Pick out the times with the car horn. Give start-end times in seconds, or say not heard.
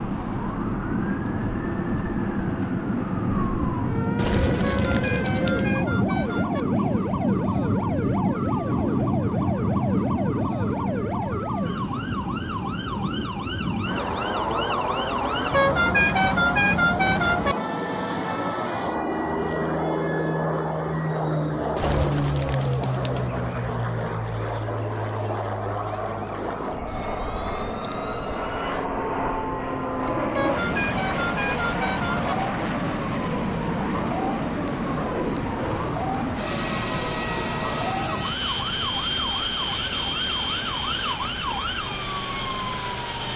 4.6-6.7, 15.5-17.6, 30.3-32.4.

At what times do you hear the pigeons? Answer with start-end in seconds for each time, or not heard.
4.2-5.8, 21.8-23.8.